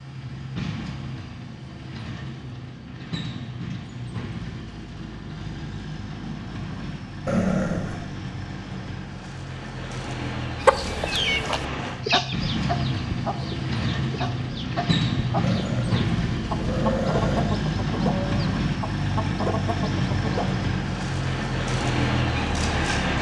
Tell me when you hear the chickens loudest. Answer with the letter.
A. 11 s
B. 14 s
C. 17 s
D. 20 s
A.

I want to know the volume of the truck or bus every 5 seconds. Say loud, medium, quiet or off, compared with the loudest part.
medium, medium, loud, loud, loud.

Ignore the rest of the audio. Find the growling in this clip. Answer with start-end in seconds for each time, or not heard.
7.2-8.1, 15.4-17.4.